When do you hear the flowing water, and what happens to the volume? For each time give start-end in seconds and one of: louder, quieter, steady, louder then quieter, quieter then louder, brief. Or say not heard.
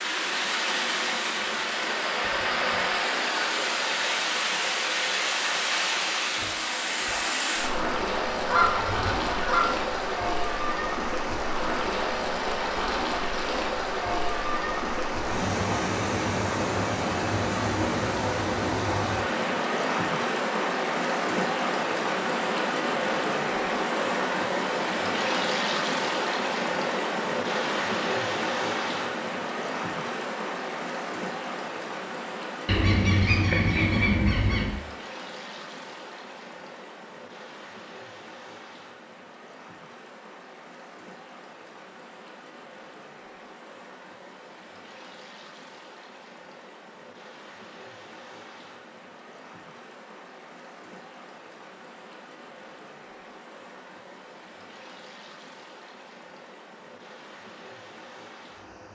0.0-58.9 quieter.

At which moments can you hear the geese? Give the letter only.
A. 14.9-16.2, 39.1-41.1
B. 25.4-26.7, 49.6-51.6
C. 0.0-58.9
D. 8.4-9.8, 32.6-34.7
D.